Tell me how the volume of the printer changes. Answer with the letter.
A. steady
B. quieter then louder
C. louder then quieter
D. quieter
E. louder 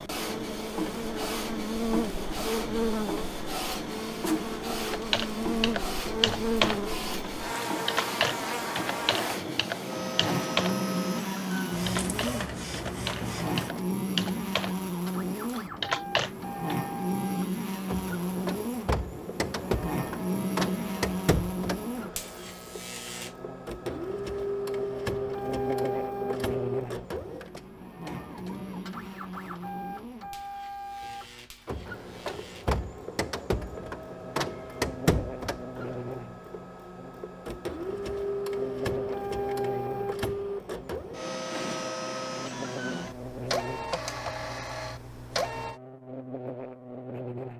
A.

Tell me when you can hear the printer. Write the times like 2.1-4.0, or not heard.
0.0-45.8.